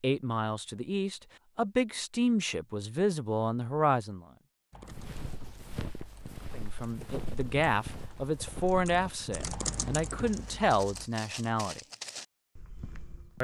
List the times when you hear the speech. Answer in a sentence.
You can hear the speech from 0.0 to 4.2 s and from 6.5 to 11.8 s.